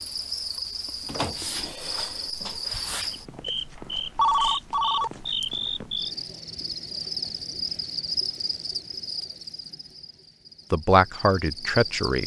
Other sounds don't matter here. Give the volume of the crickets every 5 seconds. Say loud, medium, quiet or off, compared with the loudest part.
loud, loud, medium.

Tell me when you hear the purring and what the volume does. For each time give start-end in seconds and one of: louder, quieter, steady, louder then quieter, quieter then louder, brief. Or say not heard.
not heard.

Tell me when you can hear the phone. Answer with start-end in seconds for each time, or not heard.
4.2-5.1.